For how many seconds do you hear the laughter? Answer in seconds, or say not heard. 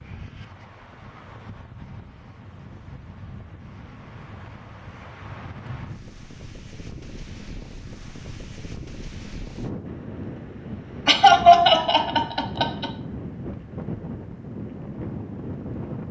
2 s.